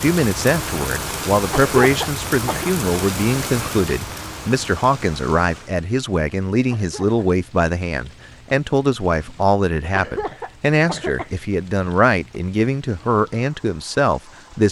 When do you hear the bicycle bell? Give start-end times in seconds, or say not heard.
not heard.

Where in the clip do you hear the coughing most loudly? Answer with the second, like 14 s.
2 s.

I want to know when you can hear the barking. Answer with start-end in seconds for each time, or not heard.
not heard.